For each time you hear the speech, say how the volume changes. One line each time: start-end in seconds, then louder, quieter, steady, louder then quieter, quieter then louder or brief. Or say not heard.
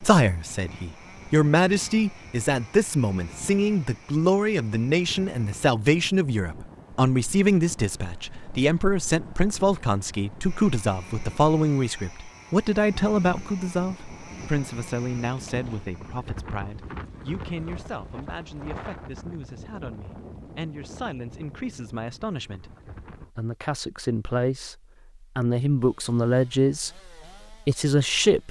0.0-28.4 quieter then louder.